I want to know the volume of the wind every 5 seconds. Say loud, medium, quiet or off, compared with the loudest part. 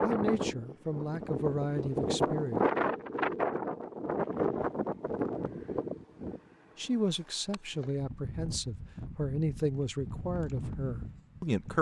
loud, medium, medium.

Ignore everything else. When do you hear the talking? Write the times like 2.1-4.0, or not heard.
0.0-2.6, 6.8-11.7.